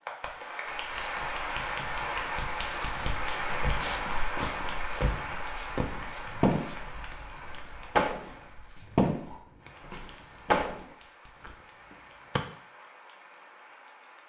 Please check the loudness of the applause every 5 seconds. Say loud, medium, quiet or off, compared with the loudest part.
loud, medium, quiet.